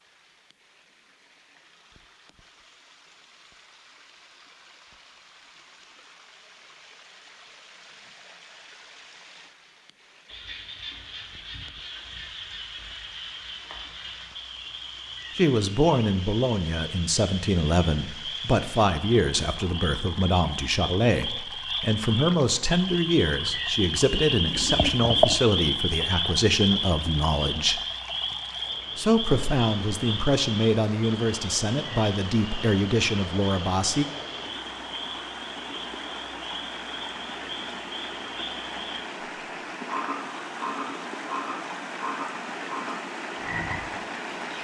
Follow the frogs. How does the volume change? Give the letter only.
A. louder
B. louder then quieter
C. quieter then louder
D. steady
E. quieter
B.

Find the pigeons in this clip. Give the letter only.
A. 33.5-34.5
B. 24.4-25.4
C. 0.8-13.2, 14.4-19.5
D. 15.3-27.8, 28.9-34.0
B.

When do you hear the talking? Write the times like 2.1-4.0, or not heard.
15.3-27.8, 28.9-34.0.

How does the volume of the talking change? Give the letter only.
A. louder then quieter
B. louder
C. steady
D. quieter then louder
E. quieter
C.